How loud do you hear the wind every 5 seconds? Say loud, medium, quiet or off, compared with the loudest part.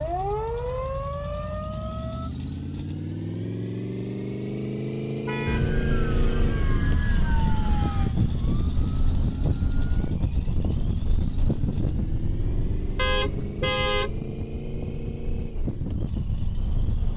off, loud, loud, loud.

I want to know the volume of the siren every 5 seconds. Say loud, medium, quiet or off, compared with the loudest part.
loud, loud, off, off.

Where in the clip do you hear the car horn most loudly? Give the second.
14 s.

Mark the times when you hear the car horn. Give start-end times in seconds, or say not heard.
5.2-5.7, 12.9-14.2.